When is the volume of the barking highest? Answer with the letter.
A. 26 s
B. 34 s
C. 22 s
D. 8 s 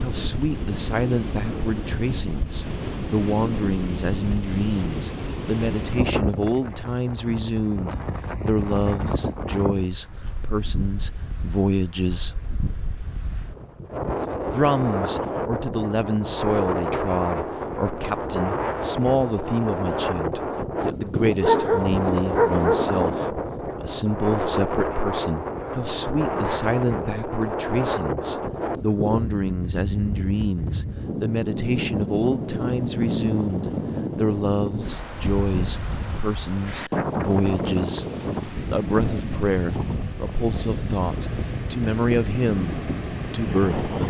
C.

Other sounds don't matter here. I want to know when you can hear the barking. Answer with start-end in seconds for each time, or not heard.
21.4-23.2.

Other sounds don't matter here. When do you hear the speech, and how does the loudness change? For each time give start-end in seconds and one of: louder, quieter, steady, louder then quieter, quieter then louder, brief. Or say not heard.
0.0-12.3 steady
14.4-44.0 steady.